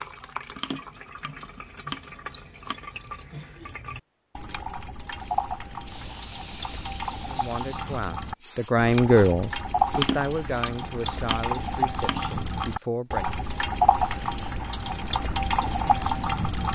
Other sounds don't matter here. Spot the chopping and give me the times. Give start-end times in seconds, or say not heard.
0.6-2.8, 9.9-12.7.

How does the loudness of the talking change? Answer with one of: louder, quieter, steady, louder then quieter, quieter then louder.
louder then quieter.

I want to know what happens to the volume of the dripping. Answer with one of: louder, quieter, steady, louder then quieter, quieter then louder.
louder.